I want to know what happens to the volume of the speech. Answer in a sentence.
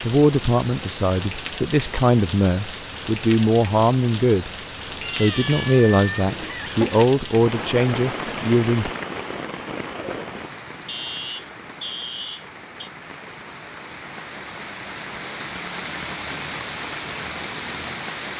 The volume of the speech stays about the same.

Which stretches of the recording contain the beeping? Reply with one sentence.
The beeping can be heard from 5.2 to 5.7 s and from 10.8 to 12.8 s.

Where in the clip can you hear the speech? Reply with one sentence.
The speech can be heard from 0.0 to 4.5 s and from 5.2 to 8.9 s.